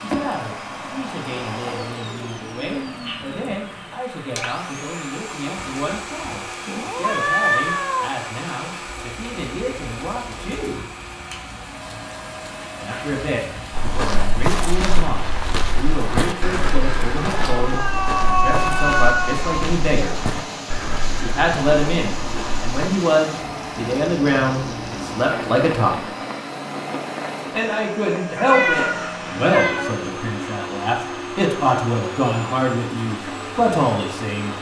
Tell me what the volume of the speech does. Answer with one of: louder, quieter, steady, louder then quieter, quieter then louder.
louder.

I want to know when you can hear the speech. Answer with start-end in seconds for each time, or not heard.
0.0-10.8, 12.8-20.1, 21.1-26.1, 27.5-34.5.